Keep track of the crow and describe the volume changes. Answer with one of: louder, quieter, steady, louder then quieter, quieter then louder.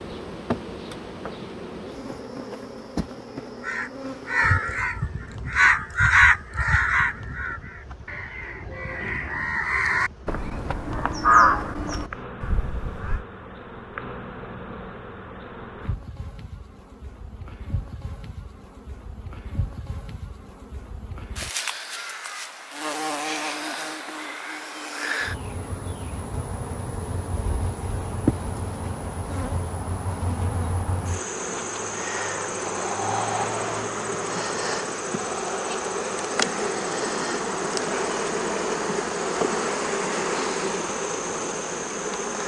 quieter then louder.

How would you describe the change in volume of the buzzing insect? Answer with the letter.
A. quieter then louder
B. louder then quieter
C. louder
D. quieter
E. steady
C.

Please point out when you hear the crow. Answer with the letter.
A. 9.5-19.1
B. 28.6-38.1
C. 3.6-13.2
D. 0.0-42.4
C.